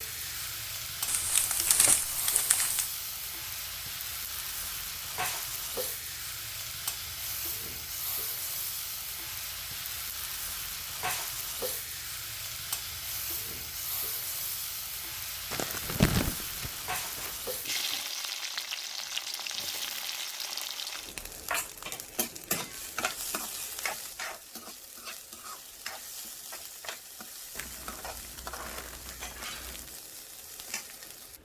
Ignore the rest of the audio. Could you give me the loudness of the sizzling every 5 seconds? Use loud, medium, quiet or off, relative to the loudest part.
loud, loud, loud, loud, loud, medium, medium.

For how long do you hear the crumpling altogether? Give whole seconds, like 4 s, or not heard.
6 s.